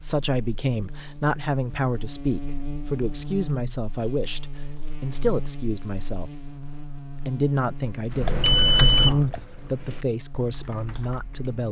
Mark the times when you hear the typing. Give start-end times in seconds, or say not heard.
8.1-11.5.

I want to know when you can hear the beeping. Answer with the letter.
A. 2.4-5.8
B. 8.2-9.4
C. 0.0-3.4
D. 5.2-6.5
B.